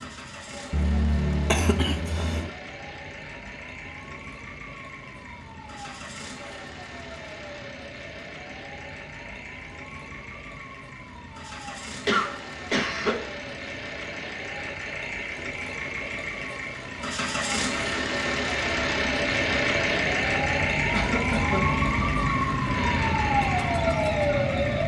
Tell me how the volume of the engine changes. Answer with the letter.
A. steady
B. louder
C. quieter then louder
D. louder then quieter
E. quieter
B.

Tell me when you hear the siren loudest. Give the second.
24 s.